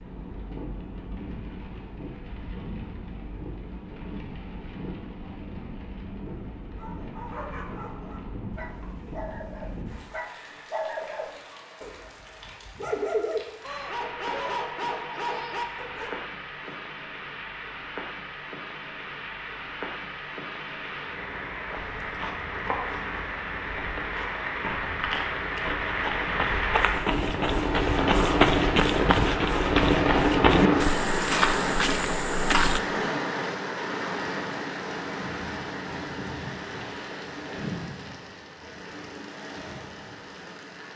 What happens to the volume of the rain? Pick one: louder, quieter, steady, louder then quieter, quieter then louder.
louder then quieter.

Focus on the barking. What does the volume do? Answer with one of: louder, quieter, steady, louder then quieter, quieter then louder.
louder.